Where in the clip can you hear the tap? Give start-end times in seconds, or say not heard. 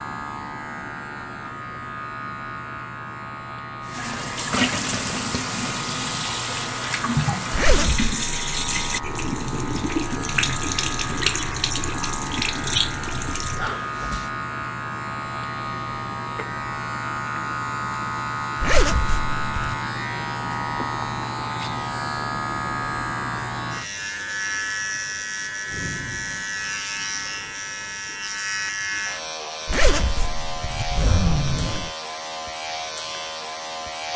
3.9-14.3.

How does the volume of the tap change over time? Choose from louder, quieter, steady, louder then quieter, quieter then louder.
steady.